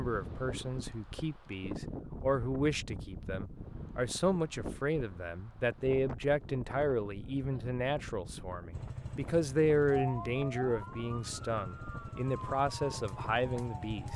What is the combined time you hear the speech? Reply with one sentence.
The speech can be heard for 14 seconds in total.